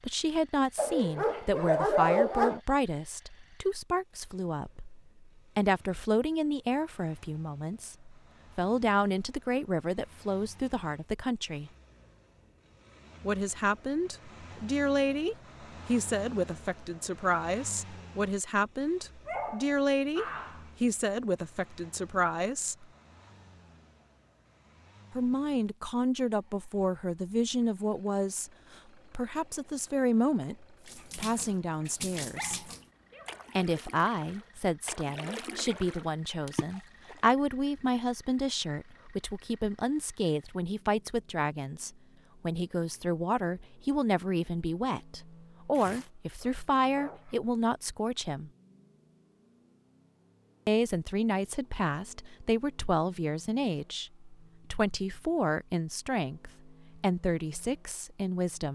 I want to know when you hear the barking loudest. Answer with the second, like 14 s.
2 s.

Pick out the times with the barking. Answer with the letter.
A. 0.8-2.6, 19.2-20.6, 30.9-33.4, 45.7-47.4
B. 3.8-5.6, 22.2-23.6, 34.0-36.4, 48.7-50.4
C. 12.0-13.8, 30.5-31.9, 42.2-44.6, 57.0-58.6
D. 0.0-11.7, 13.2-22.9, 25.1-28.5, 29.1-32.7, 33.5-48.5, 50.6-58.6
A.